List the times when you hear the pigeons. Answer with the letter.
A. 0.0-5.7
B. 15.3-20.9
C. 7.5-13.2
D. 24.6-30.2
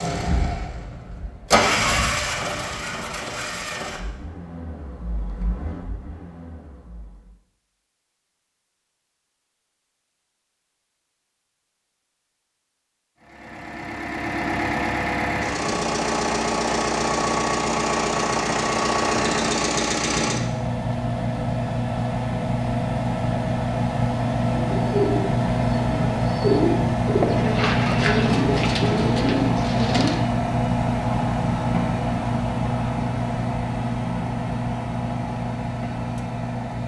D.